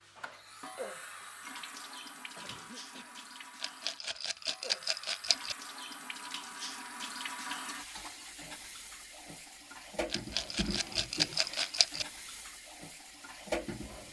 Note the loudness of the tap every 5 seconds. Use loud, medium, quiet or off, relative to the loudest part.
medium, loud, loud.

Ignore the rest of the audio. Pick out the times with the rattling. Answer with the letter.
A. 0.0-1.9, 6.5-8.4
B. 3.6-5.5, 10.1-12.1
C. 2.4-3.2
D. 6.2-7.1
B.